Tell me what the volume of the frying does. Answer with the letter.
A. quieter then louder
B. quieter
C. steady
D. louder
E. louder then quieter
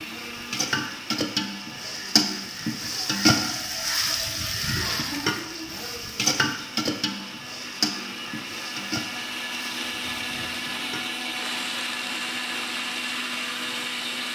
B.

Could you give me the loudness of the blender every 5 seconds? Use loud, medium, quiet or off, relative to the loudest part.
medium, medium, loud.